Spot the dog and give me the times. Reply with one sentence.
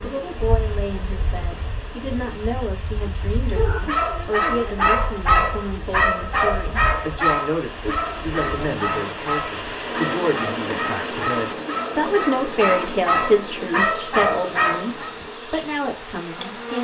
The dog can be heard from 3.5 to 15.1 s.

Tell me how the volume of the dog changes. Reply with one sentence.
The loudness of the dog goes down, then up.